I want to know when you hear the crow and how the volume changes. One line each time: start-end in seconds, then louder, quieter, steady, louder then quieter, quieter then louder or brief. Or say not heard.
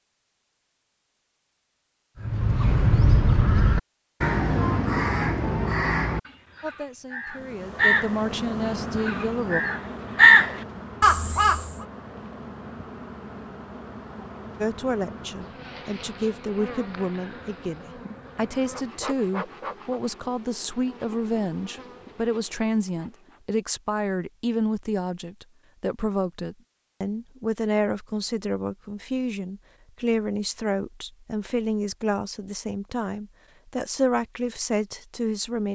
2.2-11.7 quieter then louder.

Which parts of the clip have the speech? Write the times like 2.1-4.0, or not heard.
6.6-9.6, 14.6-35.7.